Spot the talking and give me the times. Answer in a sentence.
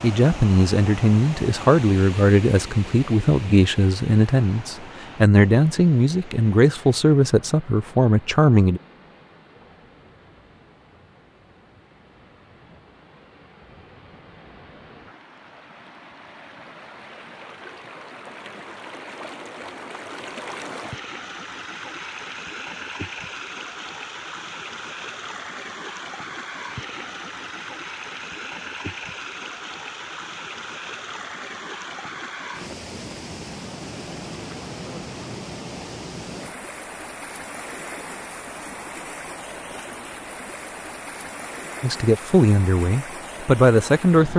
The talking can be heard from 0.0 to 8.8 s and from 41.8 to 44.3 s.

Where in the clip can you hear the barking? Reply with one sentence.
The barking can't be heard in this clip.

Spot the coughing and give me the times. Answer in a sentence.
The coughing can't be heard in this clip.